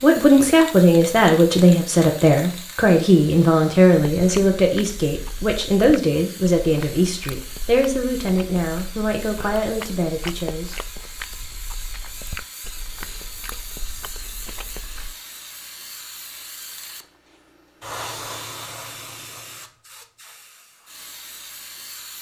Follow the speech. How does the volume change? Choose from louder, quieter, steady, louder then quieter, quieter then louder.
quieter.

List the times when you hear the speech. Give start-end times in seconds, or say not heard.
0.0-10.9.